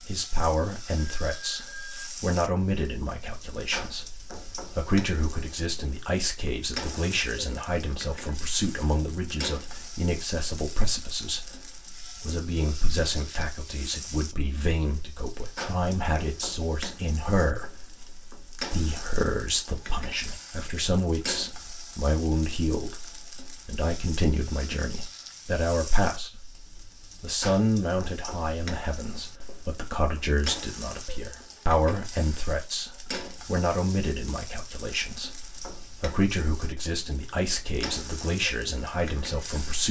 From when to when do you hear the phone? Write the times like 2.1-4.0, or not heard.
0.9-2.1.